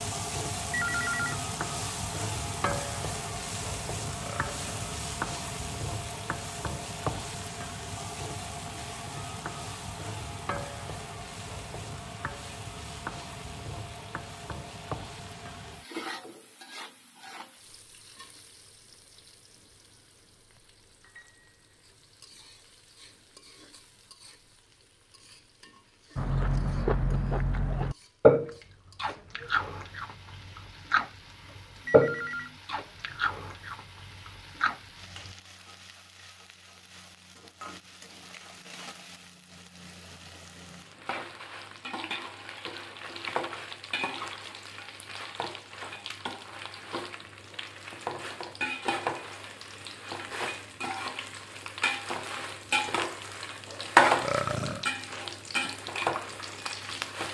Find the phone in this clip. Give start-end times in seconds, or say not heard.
0.7-1.4, 31.9-32.6.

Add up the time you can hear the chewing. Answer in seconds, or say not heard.
9 s.